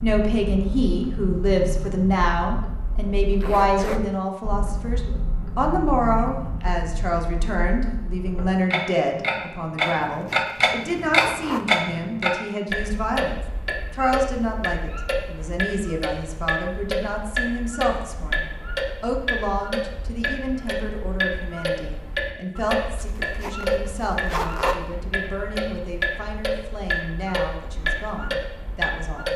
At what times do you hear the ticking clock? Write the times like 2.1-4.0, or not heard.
0.0-29.3.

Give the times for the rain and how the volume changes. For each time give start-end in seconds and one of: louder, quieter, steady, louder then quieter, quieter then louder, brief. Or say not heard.
not heard.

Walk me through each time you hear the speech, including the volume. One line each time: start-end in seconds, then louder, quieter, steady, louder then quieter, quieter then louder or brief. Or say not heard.
0.0-29.3 quieter.